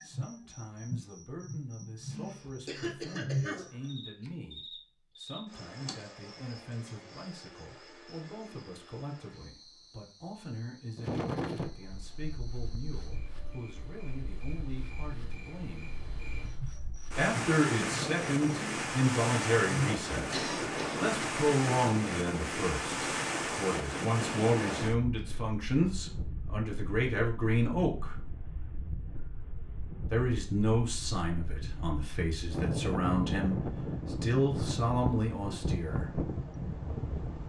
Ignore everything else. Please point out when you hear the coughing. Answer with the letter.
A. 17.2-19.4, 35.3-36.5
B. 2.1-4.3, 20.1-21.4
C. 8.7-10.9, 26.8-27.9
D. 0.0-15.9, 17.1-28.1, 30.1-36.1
B.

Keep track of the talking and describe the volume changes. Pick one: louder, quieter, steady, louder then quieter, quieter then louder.
louder.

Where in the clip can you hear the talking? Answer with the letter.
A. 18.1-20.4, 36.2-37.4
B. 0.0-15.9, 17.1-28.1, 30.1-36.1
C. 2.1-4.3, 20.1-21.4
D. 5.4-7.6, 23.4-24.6
B.